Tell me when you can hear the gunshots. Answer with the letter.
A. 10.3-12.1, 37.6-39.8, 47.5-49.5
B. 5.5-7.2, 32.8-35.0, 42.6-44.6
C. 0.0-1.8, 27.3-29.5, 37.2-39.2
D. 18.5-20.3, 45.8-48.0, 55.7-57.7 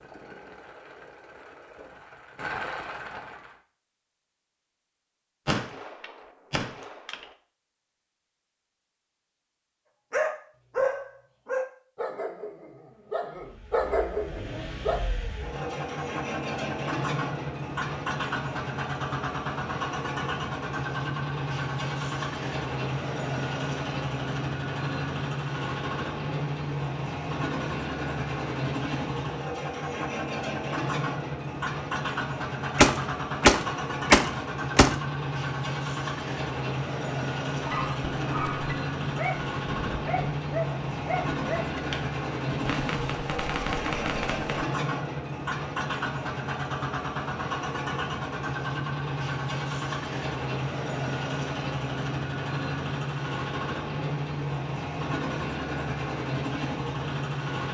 B.